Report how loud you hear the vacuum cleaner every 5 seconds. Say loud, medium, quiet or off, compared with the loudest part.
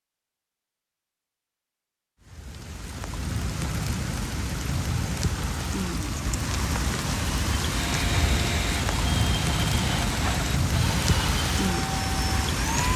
off, loud, loud.